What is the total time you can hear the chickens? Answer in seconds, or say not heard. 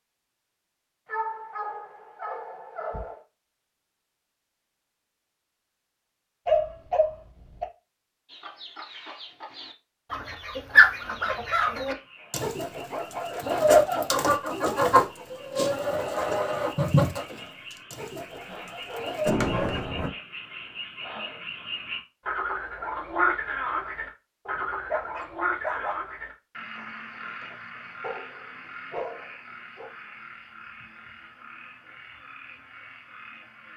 11 s.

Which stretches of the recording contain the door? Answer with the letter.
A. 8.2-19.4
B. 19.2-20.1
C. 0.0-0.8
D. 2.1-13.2
B.